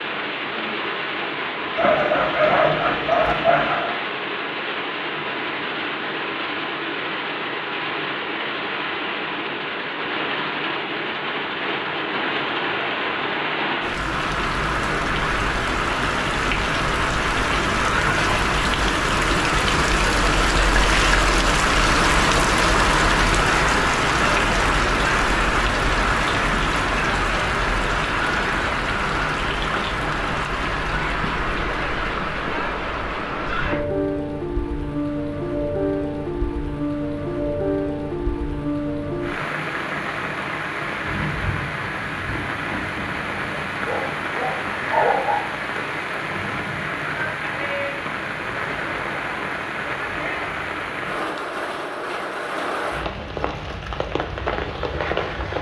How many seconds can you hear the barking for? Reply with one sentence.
The barking can be heard for 4 seconds in total.